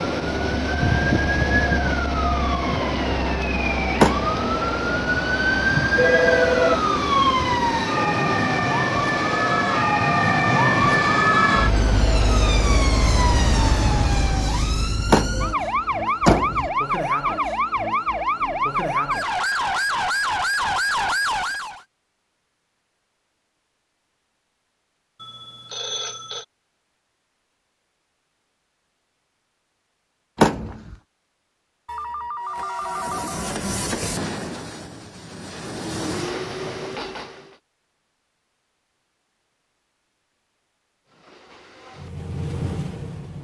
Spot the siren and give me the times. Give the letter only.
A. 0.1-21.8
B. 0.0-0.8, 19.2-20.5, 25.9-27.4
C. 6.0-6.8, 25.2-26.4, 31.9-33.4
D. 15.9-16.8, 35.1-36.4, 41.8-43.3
A.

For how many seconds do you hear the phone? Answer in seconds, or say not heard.
4 s.